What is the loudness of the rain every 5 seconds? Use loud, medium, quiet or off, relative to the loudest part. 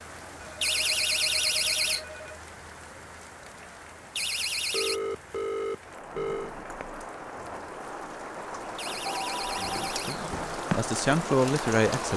quiet, medium, loud.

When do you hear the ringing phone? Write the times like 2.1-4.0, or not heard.
0.4-2.4, 4.7-6.5, 9.0-9.8.